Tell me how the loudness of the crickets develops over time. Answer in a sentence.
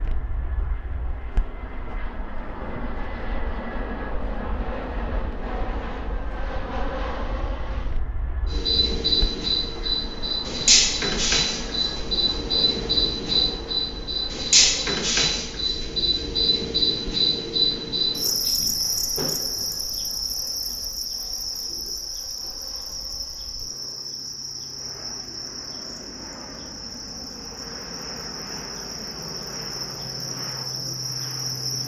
The volume of the crickets goes down.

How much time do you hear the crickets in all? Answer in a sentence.
The crickets can be heard for 23 seconds in total.